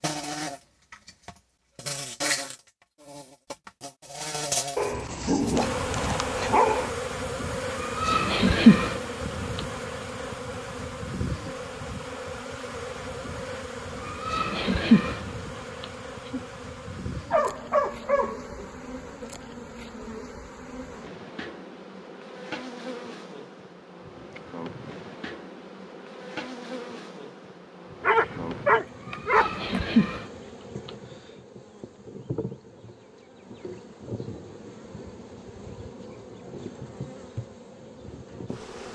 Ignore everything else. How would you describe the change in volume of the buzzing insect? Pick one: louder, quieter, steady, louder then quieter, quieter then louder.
quieter.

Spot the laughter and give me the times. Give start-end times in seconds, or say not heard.
7.7-9.7, 13.9-16.4, 29.0-30.9.